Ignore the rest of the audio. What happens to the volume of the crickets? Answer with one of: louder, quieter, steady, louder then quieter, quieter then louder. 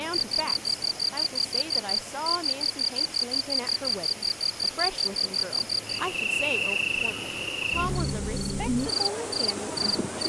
steady.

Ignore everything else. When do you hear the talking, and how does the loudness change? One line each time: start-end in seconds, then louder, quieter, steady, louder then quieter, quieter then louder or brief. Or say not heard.
0.0-10.2 steady.